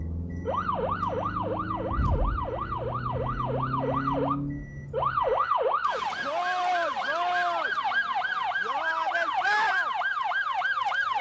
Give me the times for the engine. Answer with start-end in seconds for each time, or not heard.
0.0-5.4.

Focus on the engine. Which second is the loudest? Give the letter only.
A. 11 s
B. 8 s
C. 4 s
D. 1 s
C.